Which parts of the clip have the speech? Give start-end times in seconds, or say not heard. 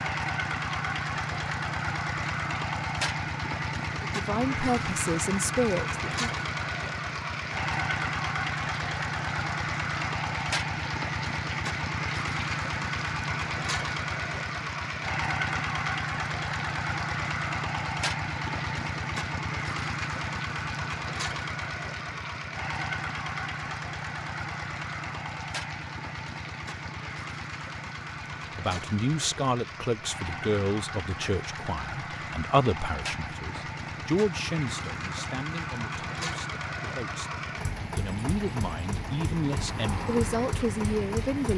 4.2-6.4, 28.6-41.5.